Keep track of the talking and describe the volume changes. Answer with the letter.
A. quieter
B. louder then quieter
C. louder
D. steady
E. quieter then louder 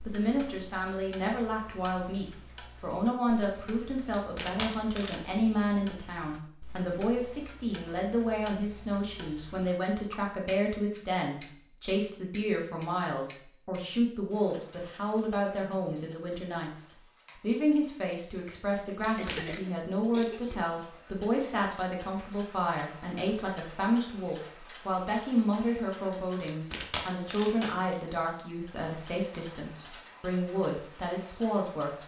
D.